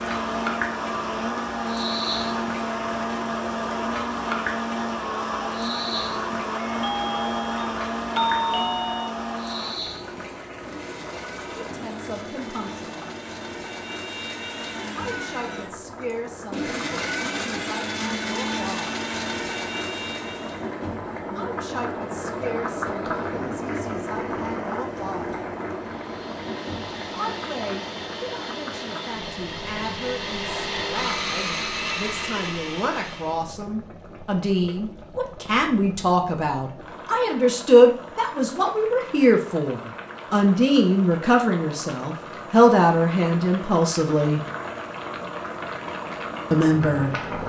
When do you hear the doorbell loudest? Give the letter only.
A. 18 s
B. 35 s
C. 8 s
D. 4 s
C.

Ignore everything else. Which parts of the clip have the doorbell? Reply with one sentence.
The doorbell can be heard from 6.7 to 9.2 s.